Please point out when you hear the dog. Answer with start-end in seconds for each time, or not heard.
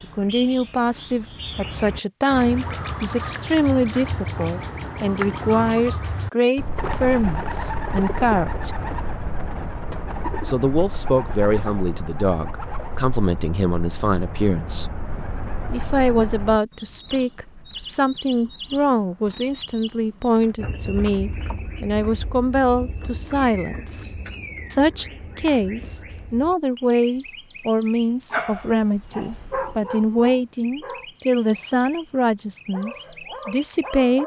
28.3-31.8, 32.4-34.2.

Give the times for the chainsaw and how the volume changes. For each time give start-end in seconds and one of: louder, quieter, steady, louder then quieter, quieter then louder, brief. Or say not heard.
not heard.